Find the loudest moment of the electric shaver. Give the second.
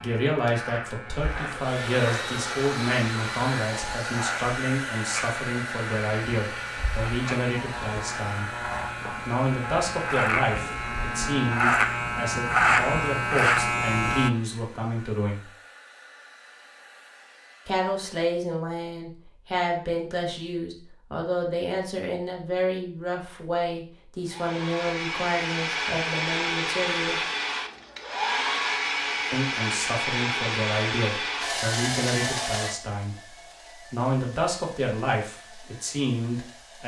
13 s.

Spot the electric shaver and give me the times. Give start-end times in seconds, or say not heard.
0.0-14.3.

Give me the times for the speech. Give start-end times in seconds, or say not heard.
0.0-8.5, 9.2-15.5, 17.6-27.2, 29.3-33.1, 33.9-36.8.